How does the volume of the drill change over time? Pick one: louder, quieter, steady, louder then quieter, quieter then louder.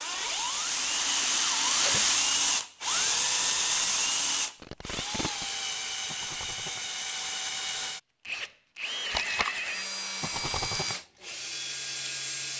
quieter.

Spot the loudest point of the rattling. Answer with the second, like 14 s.
2 s.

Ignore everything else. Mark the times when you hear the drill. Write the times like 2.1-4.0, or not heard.
0.0-12.5.